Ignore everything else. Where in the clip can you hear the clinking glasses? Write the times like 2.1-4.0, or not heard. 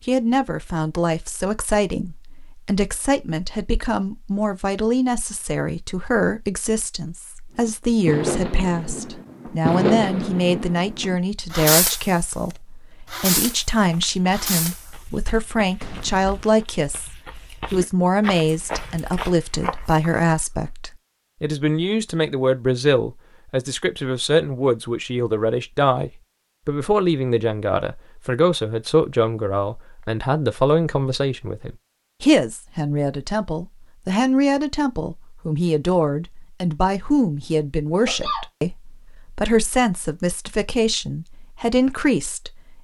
not heard.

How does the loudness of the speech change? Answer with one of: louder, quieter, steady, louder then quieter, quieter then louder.
steady.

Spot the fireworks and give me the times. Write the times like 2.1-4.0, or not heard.
7.5-12.2, 13.1-13.7, 14.3-14.9, 15.8-16.4.